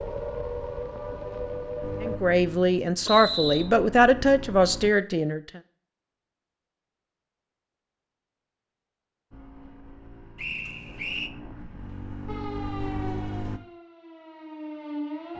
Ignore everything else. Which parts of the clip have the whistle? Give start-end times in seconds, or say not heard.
3.0-3.7, 10.3-11.3.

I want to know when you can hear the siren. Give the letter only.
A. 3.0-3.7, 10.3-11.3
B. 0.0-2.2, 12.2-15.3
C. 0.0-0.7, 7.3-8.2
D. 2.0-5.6
B.